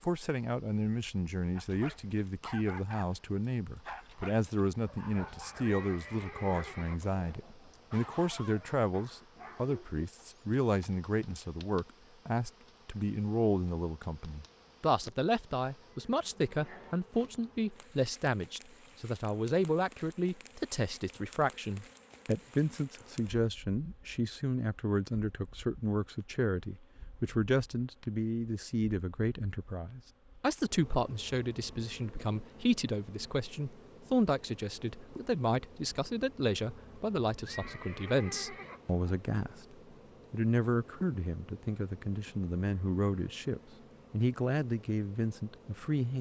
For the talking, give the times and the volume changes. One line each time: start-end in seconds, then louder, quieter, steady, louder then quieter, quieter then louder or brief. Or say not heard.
0.0-46.1 steady.